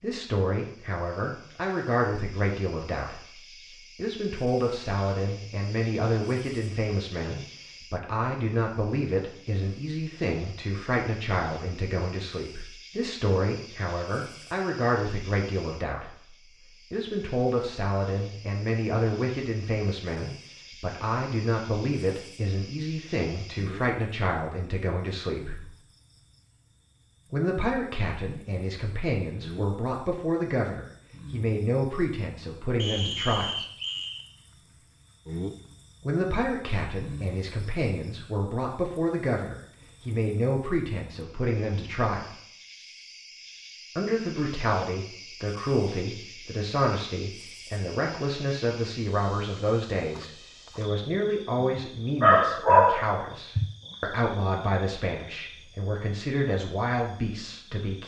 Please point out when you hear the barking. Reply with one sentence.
You can hear the barking from 51.6 to 53.7 s.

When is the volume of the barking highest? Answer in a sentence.
The volume of the barking peaks at 53 seconds.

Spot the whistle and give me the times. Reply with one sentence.
You can hear the whistle from 32.8 to 34.2 s.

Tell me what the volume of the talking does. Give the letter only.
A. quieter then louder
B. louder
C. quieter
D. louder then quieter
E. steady
E.